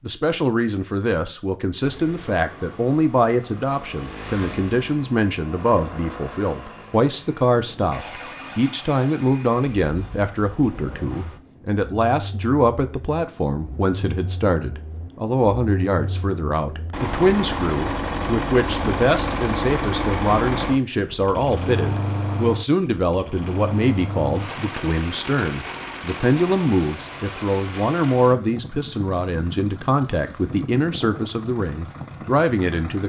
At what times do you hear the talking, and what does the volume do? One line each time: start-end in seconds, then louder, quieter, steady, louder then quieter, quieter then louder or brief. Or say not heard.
0.1-33.0 steady.